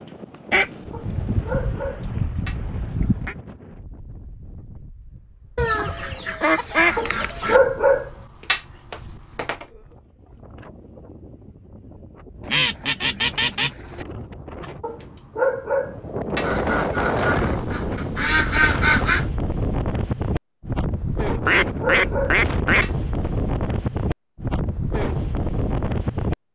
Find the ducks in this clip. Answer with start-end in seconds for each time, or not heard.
0.5-3.4, 5.5-7.6, 12.4-14.1, 16.4-19.2, 21.4-22.9.